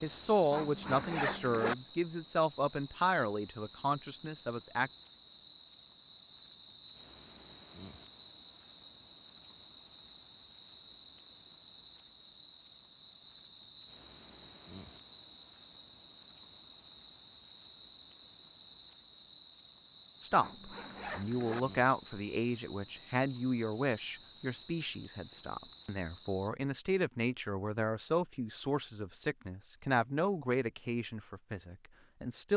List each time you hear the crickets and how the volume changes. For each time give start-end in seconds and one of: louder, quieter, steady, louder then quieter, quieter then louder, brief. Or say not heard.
0.0-26.5 steady.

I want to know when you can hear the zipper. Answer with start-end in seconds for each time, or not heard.
0.5-1.8, 20.4-21.6.